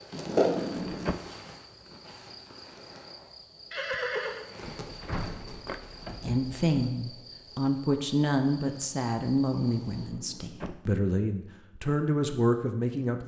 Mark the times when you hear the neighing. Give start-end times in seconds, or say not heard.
3.7-4.5.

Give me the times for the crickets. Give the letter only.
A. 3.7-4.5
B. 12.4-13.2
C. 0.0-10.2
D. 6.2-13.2
C.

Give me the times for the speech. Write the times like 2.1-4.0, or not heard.
6.2-13.2.